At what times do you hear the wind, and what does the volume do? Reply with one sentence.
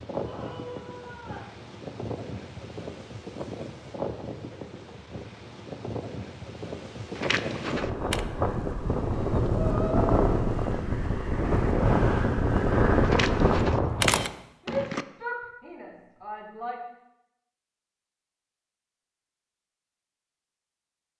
You can hear the wind from 0.0 to 14.3 s, getting louder.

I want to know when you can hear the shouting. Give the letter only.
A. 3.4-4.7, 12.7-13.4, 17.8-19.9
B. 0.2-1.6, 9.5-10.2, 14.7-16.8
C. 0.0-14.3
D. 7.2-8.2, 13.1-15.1
B.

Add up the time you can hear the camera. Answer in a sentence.
You can hear the camera for 3 seconds altogether.